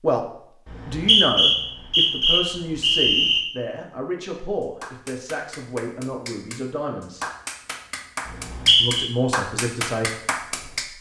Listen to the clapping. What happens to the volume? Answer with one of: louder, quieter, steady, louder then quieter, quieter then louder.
louder.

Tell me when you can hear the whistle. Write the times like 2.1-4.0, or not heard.
0.7-3.5, 8.2-9.1.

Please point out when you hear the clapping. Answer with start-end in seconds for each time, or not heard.
4.6-10.8.